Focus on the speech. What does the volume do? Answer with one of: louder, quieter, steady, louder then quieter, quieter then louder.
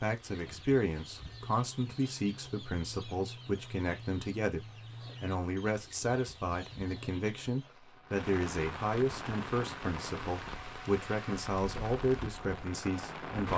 steady.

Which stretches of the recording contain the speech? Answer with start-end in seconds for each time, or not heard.
0.0-13.5.